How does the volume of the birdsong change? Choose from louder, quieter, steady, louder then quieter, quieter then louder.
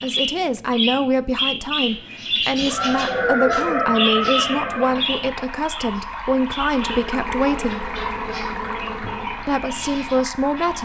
quieter.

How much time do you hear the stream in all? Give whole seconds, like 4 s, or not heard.
6 s.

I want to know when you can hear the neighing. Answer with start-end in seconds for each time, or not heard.
2.5-5.0.